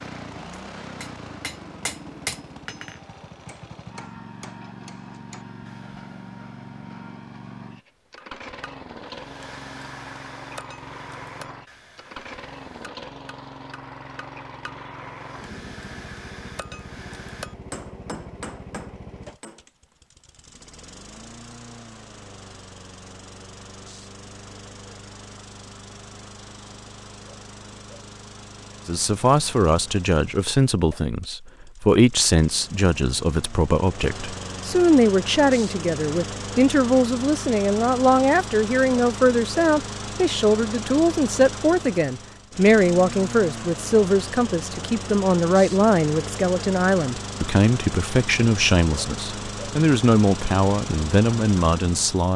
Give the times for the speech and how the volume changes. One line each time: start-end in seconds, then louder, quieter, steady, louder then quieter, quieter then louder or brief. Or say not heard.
28.9-52.3 steady.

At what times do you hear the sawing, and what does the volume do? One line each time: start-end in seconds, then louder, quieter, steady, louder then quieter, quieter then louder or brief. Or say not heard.
not heard.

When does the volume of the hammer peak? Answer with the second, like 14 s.
2 s.